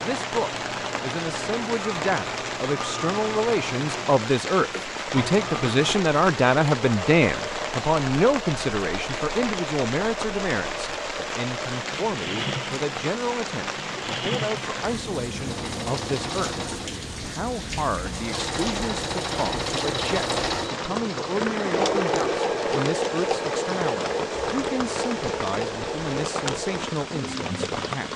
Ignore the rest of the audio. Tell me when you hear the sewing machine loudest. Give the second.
22 s.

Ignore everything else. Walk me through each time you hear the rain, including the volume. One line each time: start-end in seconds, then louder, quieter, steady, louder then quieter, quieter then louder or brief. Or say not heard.
0.0-28.1 steady.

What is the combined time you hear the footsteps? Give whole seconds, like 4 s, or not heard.
not heard.